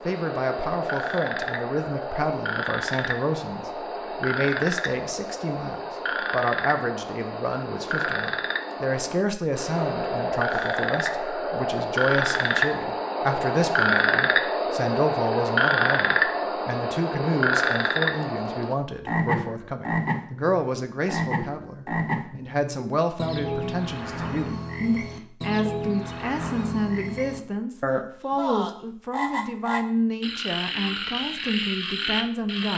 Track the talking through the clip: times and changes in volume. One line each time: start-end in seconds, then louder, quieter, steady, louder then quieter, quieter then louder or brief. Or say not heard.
0.1-32.7 steady.